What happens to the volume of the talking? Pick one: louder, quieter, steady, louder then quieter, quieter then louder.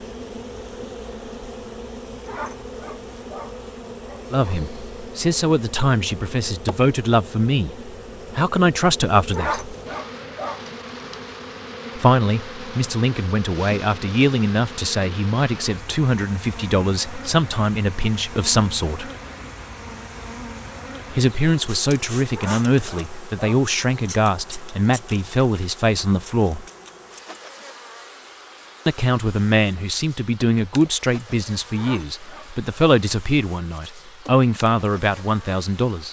steady.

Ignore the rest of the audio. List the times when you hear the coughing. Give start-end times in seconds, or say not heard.
not heard.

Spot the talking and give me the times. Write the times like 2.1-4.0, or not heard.
4.3-9.8, 11.9-19.1, 21.1-26.6, 28.9-36.0.